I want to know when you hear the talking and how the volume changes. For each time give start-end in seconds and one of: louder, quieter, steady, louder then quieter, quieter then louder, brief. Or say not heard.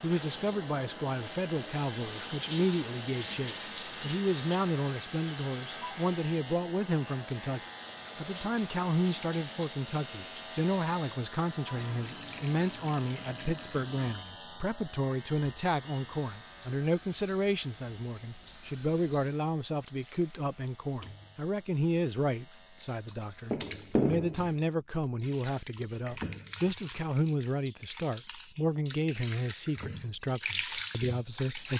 0.0-31.7 steady.